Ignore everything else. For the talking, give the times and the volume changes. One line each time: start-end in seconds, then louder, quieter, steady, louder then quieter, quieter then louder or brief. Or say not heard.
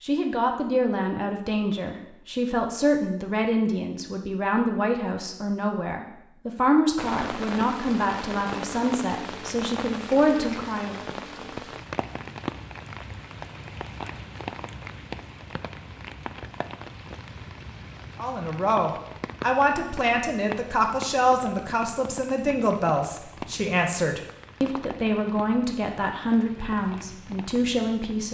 0.0-11.1 steady
18.2-28.2 steady.